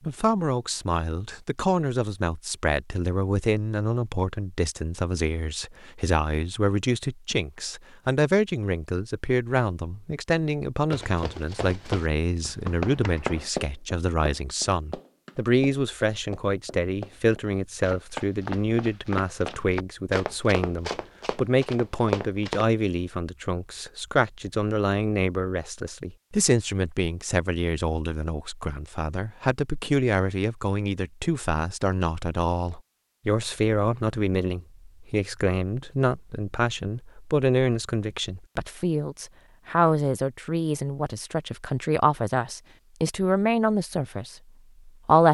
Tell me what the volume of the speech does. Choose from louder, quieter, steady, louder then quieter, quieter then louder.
steady.